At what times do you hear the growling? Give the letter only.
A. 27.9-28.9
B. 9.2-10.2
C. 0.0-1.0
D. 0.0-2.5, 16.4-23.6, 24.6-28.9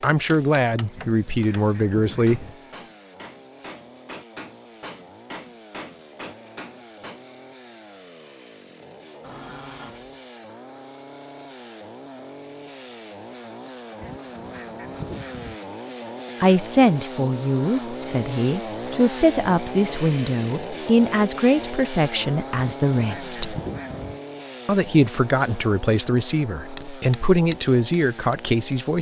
B.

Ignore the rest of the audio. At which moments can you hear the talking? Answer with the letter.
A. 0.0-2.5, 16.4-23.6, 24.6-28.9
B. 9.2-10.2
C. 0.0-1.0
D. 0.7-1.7
A.